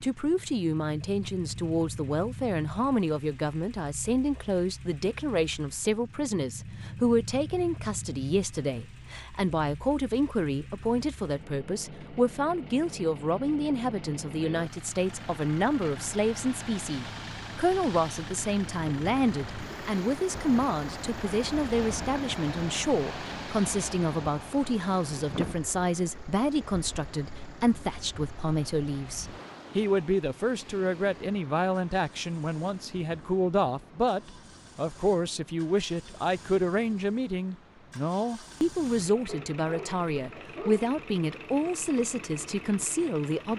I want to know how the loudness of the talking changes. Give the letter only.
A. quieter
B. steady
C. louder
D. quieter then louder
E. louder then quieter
B.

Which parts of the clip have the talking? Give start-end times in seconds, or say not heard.
0.0-43.5.